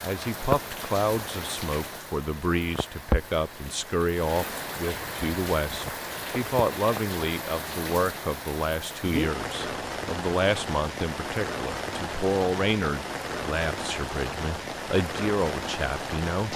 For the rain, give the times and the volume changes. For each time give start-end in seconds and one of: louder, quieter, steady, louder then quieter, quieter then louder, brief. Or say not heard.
0.0-16.5 steady.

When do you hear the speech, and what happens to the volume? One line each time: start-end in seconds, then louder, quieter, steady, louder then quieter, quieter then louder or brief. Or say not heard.
0.0-16.5 steady.